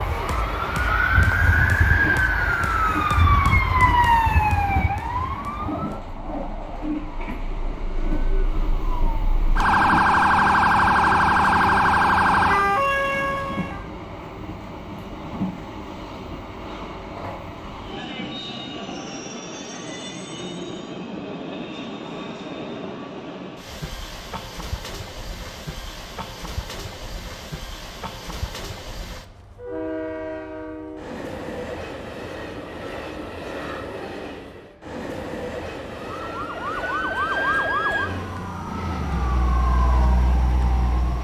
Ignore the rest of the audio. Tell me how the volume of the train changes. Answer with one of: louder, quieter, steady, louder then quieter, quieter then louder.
steady.